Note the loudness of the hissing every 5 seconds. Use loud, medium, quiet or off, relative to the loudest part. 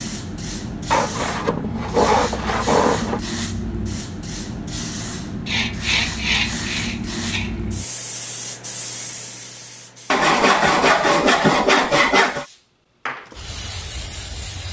loud, loud, medium.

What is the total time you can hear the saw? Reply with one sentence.
The saw can be heard for 7 seconds in total.